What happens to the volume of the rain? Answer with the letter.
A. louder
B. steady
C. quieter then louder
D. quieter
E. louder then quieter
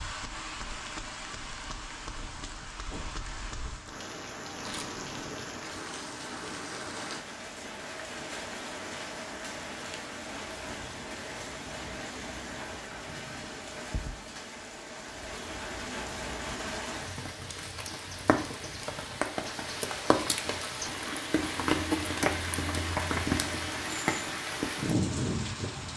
A.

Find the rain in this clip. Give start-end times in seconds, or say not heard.
0.0-25.9.